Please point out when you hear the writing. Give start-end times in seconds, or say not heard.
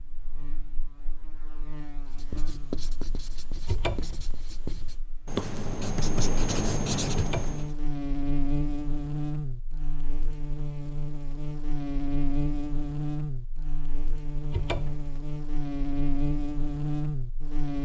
2.0-7.8.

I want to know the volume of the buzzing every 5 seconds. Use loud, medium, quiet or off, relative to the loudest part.
quiet, loud, loud, loud.